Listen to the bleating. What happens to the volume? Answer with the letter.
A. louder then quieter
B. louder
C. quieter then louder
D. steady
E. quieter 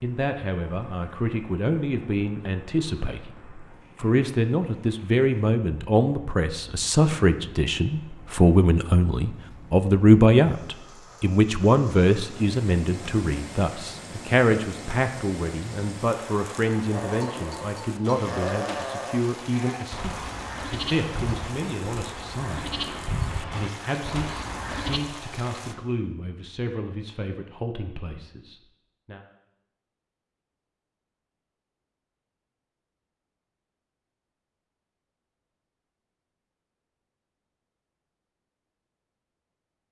D.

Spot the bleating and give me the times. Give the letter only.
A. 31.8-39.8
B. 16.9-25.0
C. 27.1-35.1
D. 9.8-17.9
B.